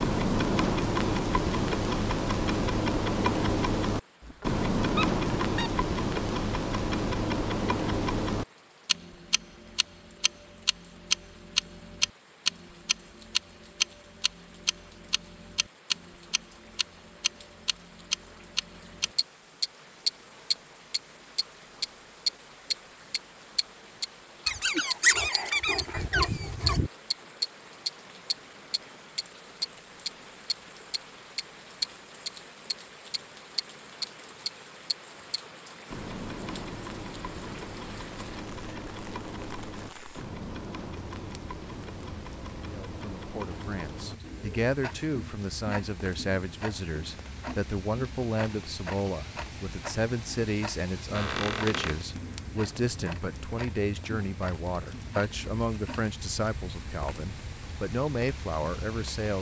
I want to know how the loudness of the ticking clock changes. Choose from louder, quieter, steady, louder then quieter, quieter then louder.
quieter.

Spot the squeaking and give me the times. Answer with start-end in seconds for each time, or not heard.
4.2-5.7, 24.4-26.9, 51.1-52.0.